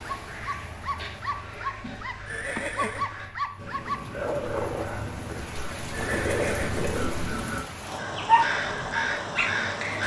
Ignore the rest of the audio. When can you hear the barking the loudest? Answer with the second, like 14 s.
8 s.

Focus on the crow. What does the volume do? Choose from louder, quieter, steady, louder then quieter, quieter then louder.
louder.